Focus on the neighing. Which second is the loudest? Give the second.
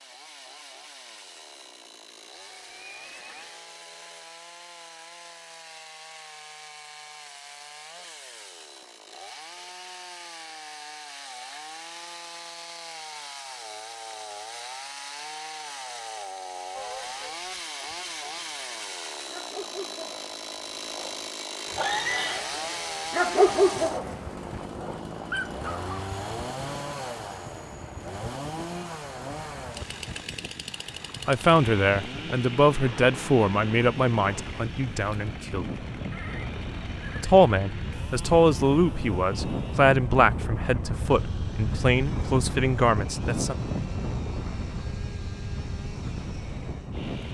22 s.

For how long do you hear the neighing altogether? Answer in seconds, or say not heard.
3 s.